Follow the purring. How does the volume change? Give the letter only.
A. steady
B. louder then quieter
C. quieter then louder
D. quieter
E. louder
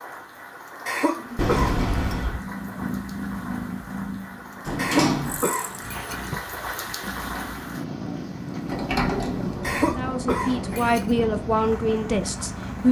C.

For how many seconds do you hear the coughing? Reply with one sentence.
The coughing can be heard for 4 seconds in total.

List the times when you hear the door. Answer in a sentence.
The door can be heard from 1.4 to 2.5 s, from 4.7 to 5.5 s and from 8.6 to 10.8 s.